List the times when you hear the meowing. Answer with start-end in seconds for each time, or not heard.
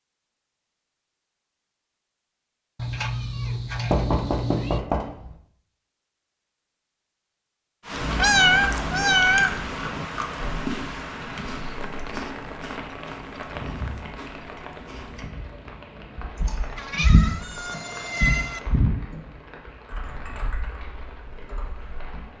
2.8-4.8, 8.2-10.1, 16.8-18.6.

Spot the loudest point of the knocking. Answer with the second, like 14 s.
4 s.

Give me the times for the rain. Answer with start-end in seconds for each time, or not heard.
7.8-22.3.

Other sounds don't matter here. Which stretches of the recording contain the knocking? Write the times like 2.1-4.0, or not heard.
3.9-5.3.